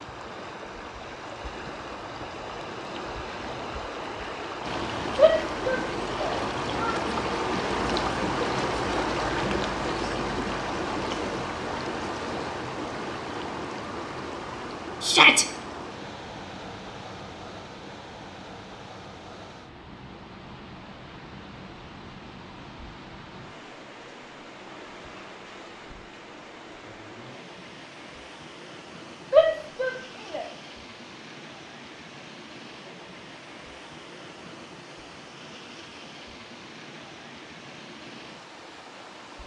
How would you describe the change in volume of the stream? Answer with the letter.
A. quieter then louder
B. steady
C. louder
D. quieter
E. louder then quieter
D.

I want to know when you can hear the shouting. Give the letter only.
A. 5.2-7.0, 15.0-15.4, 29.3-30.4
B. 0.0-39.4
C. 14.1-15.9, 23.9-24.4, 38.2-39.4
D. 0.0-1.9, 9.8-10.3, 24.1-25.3
A.